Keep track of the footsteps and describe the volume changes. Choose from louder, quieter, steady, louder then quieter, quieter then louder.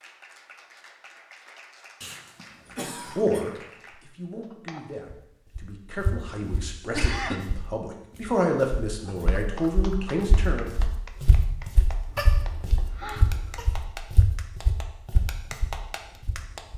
quieter then louder.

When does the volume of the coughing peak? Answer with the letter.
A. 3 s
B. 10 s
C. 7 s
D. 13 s
C.